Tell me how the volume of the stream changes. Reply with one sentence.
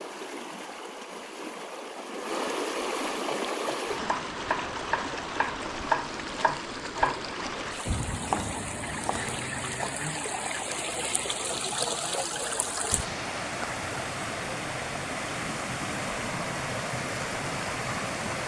The volume of the stream stays about the same.